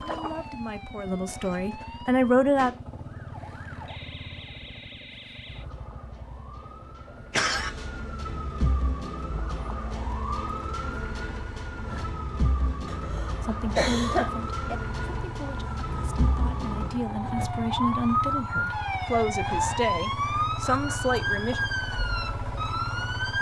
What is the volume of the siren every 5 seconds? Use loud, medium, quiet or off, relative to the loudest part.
quiet, medium, medium, loud, loud.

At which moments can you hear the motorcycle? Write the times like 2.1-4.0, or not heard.
0.0-23.3.